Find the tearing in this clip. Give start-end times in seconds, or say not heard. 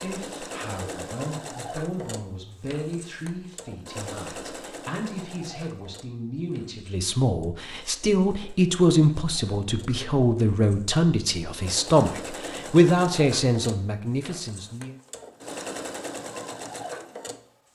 not heard.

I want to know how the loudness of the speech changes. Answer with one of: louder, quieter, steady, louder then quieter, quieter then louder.
louder.